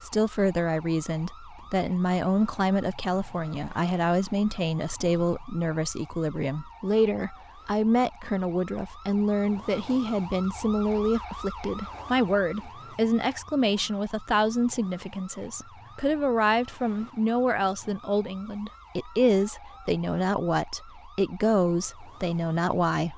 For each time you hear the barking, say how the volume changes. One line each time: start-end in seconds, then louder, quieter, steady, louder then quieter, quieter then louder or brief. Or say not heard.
not heard.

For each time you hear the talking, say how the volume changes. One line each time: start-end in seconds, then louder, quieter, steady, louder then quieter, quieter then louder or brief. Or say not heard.
0.0-23.1 steady.